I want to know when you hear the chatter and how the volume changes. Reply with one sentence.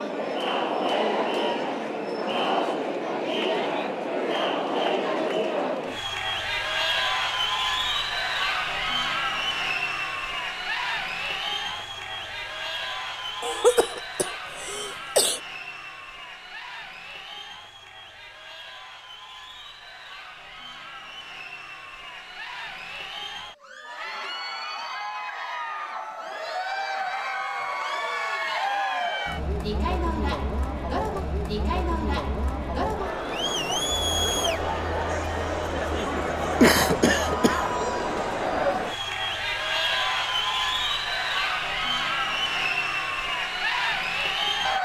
The chatter can be heard from 0.0 to 44.8 s, getting quieter then louder.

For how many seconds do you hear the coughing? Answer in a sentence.
You can hear the coughing for 3 seconds altogether.